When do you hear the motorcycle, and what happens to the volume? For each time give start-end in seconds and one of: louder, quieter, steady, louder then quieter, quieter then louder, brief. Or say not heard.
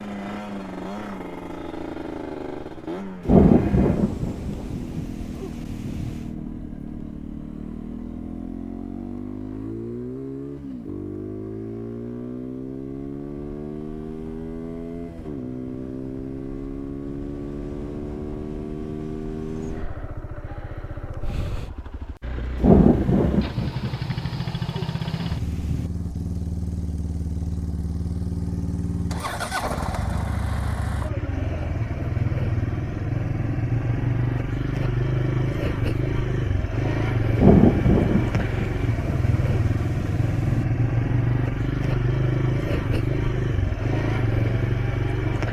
0.0-45.4 louder.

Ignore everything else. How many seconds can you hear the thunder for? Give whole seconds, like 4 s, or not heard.
10 s.